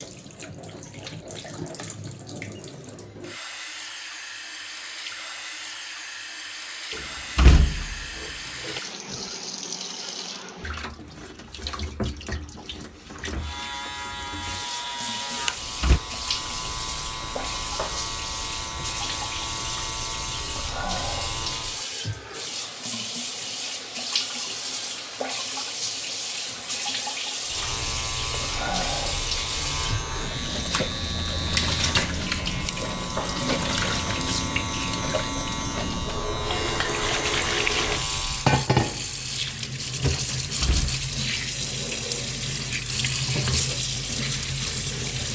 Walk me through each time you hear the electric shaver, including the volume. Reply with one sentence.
The electric shaver can be heard from 13.3 to 21.9 s, at a steady volume; and from 27.4 to 38.5 s, at a steady volume.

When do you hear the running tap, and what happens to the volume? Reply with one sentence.
The running tap can be heard from 0.0 to 45.3 s, getting louder.